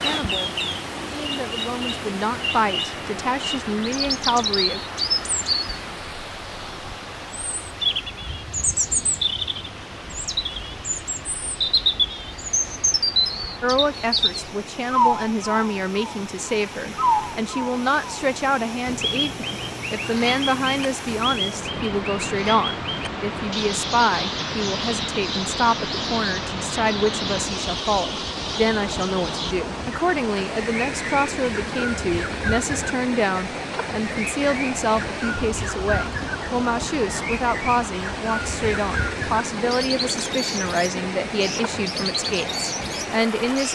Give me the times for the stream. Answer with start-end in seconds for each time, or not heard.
0.0-43.6.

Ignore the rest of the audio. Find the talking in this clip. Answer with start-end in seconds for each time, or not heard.
0.0-4.8, 13.6-43.6.